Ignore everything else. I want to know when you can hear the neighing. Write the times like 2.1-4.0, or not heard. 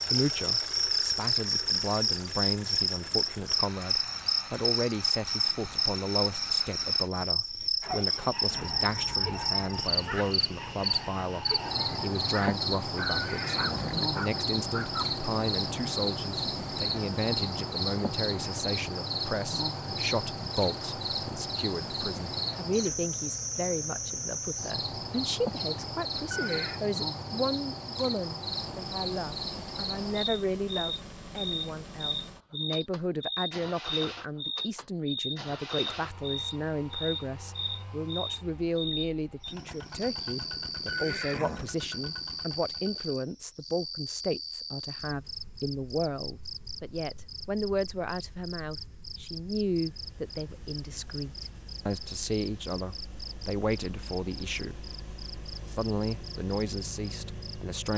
13.1-14.1, 26.1-26.9, 40.8-41.7.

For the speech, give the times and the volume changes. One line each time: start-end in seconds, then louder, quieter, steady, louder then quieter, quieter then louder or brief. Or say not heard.
0.1-54.9 steady
55.6-57.9 brief.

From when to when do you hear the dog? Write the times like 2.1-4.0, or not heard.
7.8-15.1.